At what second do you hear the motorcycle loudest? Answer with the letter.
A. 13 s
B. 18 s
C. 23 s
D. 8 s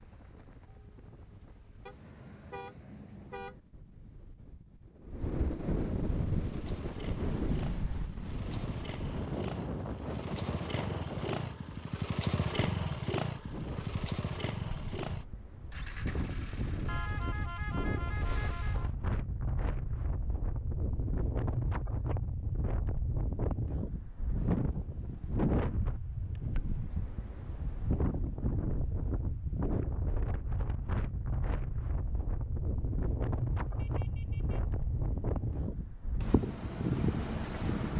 A.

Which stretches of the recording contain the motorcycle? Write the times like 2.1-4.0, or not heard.
6.2-18.9.